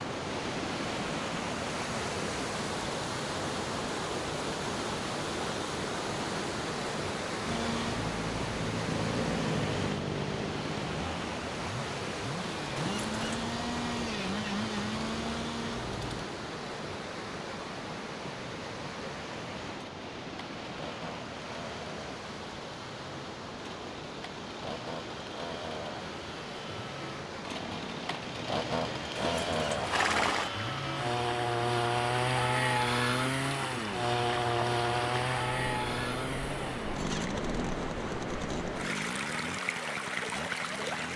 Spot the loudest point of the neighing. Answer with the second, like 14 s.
30 s.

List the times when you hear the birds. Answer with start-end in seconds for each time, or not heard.
not heard.